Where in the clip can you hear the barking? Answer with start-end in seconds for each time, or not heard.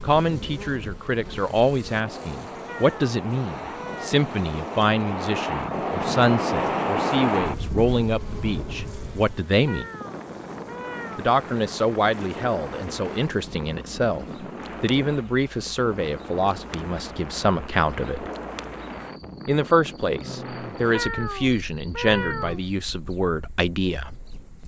not heard.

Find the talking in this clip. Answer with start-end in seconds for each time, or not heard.
0.0-9.8, 11.2-18.3, 19.4-24.1.